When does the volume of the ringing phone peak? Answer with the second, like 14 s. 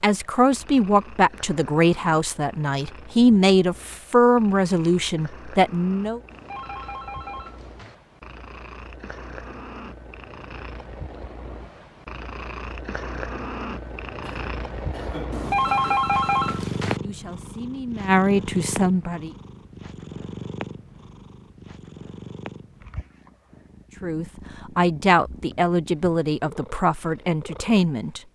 16 s.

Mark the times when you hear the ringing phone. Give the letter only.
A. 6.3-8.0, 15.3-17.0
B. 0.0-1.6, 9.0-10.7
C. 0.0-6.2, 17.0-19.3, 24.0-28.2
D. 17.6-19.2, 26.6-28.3
A.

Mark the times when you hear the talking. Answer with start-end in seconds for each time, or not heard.
0.0-6.2, 17.0-19.3, 24.0-28.2.